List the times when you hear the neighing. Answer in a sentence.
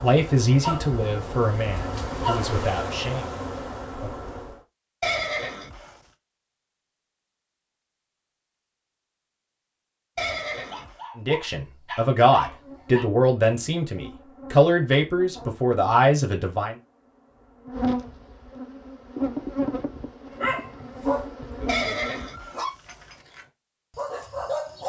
You can hear the neighing from 5.0 to 6.0 s, from 10.2 to 11.0 s and from 21.6 to 23.1 s.